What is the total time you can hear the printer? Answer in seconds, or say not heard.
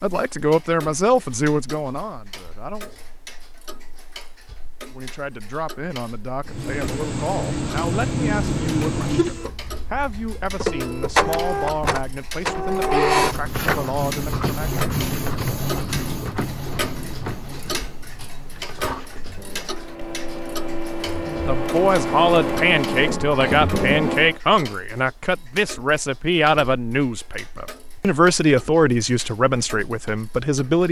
18 s.